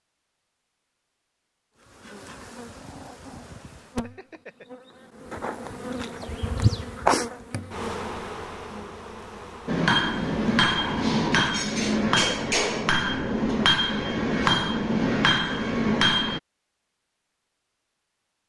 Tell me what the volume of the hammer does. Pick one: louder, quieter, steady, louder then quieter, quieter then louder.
steady.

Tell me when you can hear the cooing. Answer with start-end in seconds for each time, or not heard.
not heard.